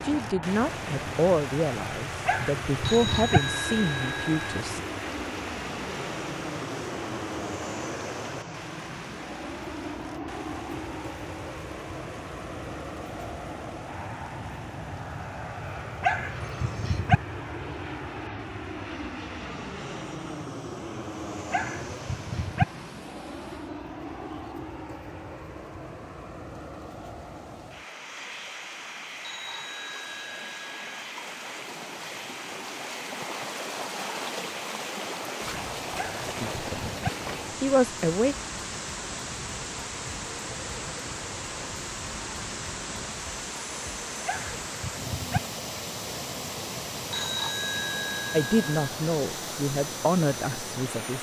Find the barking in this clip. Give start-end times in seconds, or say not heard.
2.2-3.4, 16.0-17.2, 21.5-22.6, 36.0-37.1, 44.2-45.4.